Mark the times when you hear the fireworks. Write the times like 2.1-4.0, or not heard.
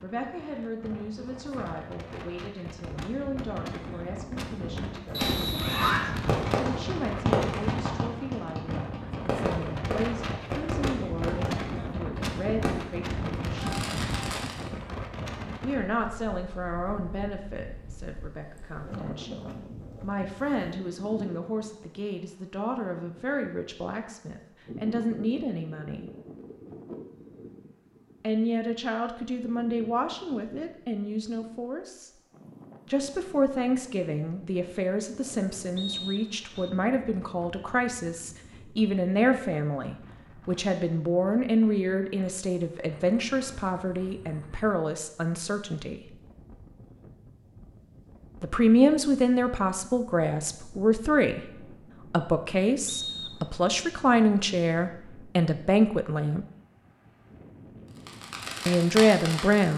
5.2-14.7, 57.9-59.7.